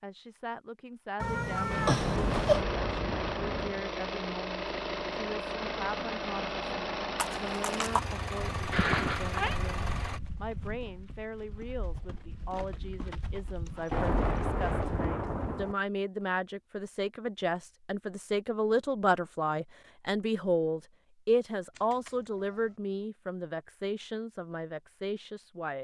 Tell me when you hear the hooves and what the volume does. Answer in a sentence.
You can hear the hooves from 7.2 to 15.1 s, getting quieter.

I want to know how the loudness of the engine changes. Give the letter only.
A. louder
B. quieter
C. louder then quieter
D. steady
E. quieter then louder
D.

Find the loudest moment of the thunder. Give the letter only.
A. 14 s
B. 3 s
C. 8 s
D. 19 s
A.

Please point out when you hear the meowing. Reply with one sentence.
The meowing can be heard from 1.2 to 2.6 s, from 8.7 to 9.6 s and from 21.8 to 22.8 s.